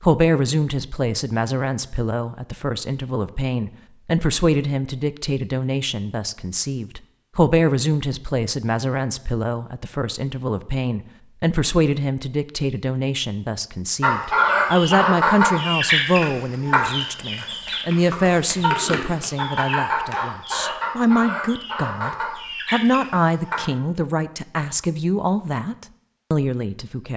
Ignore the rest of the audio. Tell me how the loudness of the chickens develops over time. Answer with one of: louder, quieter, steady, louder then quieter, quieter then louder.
quieter.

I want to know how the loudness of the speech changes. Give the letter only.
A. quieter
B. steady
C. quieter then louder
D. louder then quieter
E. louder
B.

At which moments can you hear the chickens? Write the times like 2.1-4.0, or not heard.
14.0-23.6.